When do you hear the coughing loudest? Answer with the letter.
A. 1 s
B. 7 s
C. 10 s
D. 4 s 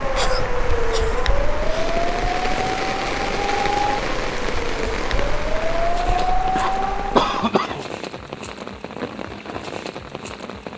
B.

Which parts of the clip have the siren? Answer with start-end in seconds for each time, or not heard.
0.0-7.5.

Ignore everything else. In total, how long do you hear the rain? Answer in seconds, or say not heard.
11 s.